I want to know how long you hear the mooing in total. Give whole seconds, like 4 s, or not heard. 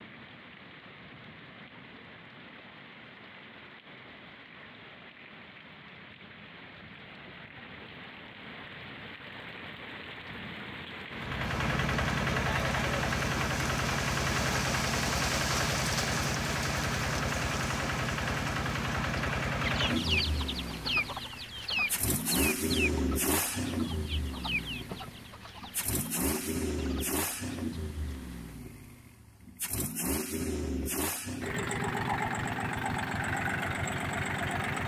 not heard.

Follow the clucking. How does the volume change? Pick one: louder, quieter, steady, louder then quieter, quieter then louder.
quieter.